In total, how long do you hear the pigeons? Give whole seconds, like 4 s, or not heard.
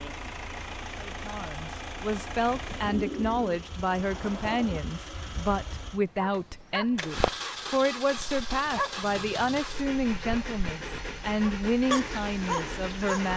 2 s.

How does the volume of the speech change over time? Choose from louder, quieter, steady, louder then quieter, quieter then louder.
steady.